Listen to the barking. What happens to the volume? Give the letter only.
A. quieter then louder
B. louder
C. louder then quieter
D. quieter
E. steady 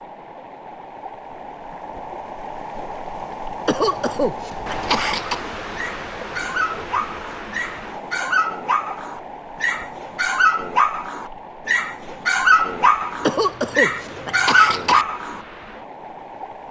B.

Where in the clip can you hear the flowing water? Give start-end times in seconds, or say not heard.
0.0-16.6.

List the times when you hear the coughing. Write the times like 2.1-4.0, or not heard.
3.6-5.4, 13.2-15.1.